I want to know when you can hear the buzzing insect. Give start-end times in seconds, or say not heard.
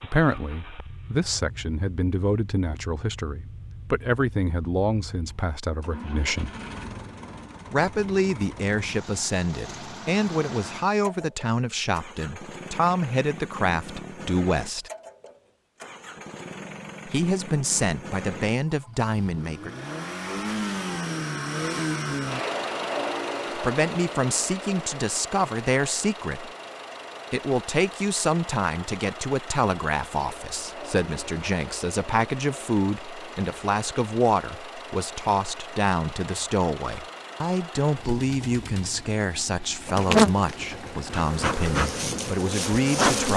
39.9-43.3.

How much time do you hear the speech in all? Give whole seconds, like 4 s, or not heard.
35 s.